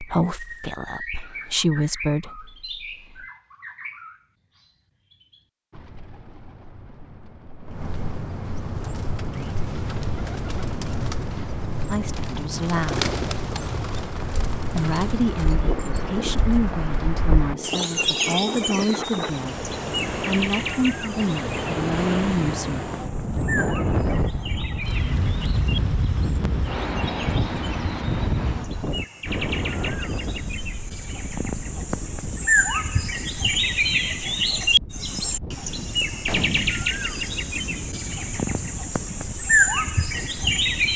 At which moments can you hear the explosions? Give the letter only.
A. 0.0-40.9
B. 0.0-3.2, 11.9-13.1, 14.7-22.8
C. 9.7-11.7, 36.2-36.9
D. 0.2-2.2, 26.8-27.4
C.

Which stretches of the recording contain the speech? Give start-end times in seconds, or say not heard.
0.0-3.2, 11.9-13.1, 14.7-22.8.